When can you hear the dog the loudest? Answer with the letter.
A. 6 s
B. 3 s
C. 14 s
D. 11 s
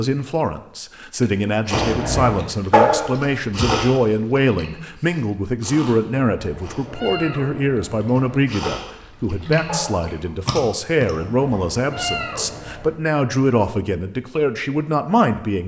B.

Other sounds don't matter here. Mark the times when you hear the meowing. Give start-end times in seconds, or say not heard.
1.7-2.5, 6.3-8.2, 11.1-13.0.